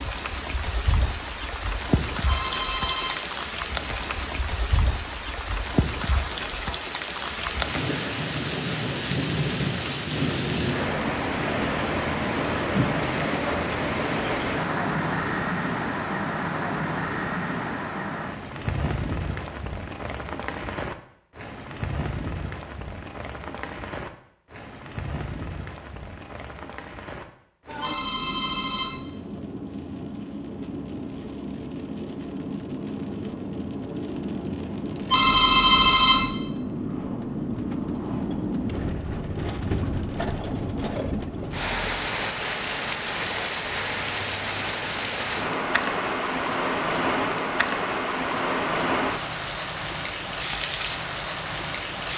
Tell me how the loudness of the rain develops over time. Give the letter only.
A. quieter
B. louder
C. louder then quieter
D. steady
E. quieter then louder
E.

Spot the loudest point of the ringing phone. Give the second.
36 s.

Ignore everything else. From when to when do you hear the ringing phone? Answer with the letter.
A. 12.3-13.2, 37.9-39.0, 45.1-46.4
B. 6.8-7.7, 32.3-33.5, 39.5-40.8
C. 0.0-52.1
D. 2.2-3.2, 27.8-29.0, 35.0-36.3
D.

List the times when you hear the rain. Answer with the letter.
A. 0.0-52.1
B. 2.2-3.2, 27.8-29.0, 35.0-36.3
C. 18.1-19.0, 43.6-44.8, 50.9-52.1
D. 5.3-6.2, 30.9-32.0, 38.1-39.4
A.